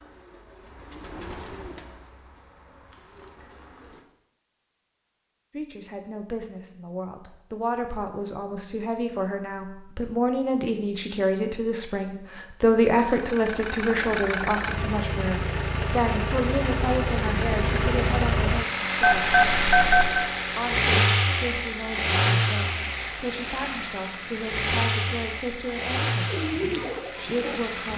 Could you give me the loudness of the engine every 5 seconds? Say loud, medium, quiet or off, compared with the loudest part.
off, off, medium, loud, loud, medium.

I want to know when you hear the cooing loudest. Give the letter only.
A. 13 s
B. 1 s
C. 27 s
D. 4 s
C.